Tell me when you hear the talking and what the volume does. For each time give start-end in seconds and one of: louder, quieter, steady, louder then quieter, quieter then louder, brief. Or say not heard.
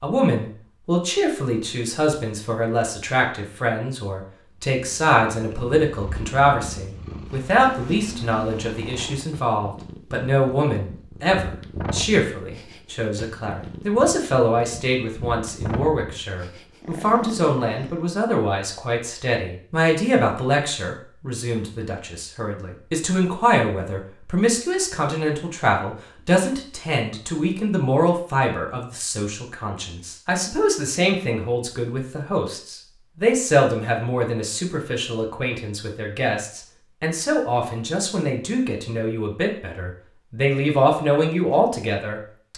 0.0-42.5 steady.